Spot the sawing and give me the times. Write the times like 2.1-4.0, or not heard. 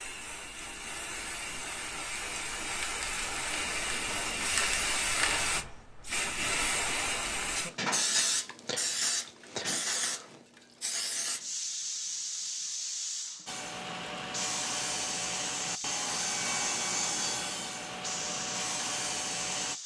13.4-19.8.